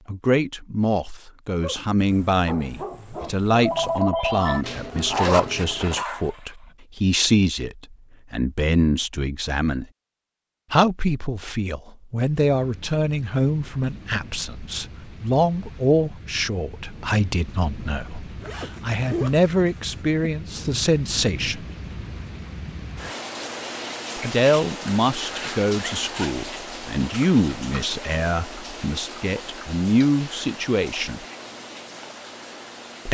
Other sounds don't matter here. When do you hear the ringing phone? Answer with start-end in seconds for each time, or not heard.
3.2-4.7.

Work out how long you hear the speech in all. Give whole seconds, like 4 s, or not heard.
28 s.